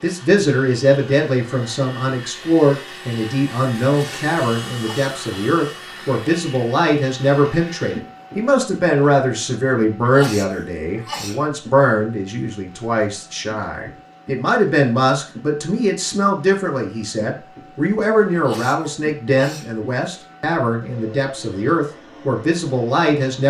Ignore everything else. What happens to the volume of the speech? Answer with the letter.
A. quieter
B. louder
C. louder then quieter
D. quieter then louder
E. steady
E.